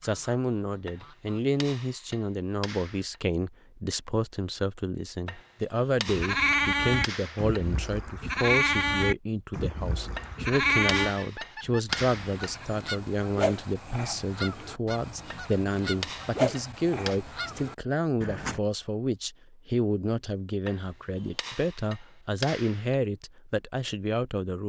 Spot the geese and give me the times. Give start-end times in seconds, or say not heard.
0.0-1.6, 11.2-18.6.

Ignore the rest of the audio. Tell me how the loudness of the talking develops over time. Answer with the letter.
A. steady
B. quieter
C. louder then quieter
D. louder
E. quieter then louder
A.